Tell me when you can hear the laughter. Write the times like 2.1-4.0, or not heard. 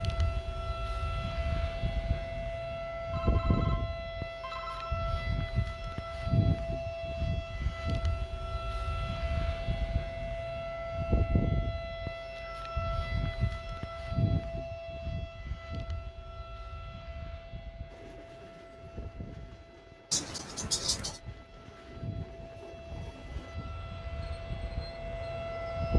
20.1-21.2.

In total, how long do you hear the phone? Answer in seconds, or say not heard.
2 s.